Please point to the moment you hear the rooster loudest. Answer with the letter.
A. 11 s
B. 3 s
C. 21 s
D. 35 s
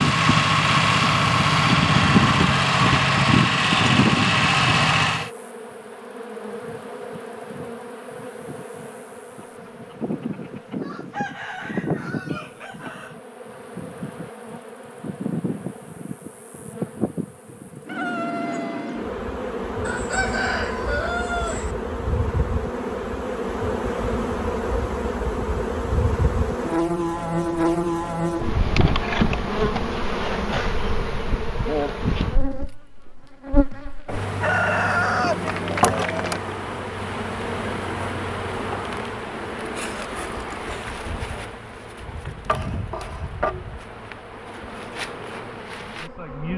D.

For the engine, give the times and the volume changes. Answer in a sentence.
You can hear the engine from 0.0 to 5.3 s, at a steady volume.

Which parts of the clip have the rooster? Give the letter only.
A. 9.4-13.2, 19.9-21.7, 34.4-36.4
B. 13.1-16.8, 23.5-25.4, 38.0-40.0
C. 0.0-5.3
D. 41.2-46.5
A.